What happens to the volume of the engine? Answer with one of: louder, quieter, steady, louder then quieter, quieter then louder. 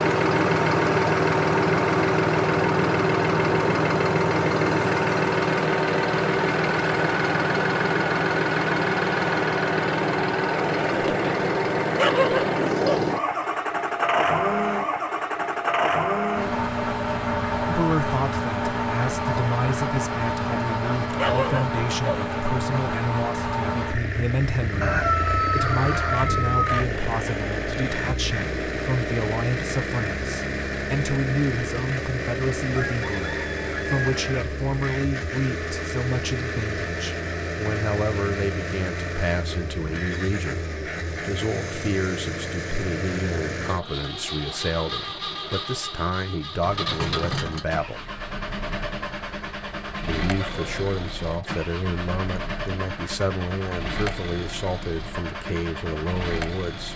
quieter.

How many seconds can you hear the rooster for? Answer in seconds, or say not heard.
4 s.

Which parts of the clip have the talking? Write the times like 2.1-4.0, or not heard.
17.6-48.0, 50.0-56.9.